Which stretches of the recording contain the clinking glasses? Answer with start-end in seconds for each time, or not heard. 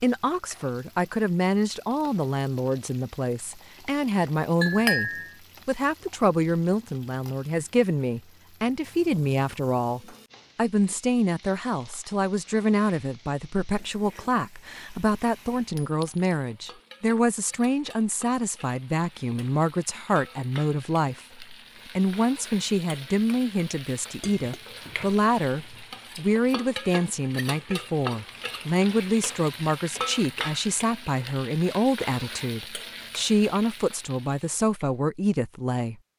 4.6-5.3, 15.8-16.4, 24.1-25.8.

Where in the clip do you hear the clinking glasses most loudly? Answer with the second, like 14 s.
5 s.